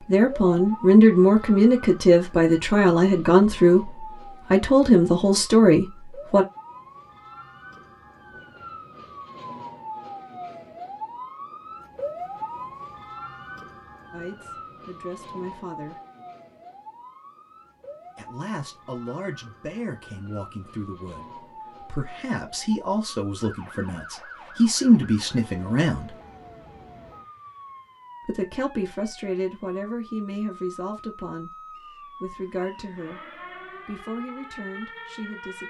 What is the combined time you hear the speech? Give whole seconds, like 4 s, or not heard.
24 s.